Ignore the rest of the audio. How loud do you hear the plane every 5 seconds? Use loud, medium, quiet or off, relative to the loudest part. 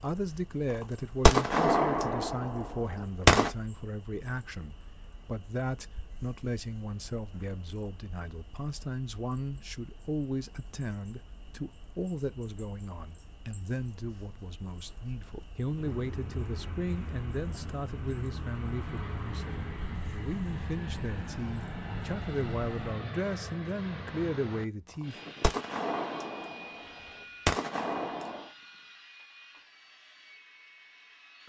off, off, off, loud, loud, medium, quiet.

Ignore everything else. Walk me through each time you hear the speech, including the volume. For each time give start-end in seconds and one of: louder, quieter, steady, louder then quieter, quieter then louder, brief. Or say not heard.
0.0-25.1 steady.